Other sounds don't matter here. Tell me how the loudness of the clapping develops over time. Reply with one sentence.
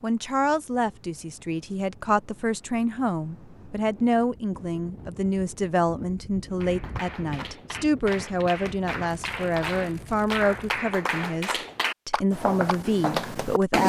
The volume of the clapping goes up.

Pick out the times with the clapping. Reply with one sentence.
You can hear the clapping from 6.6 to 13.7 s.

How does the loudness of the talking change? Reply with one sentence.
The volume of the talking stays about the same.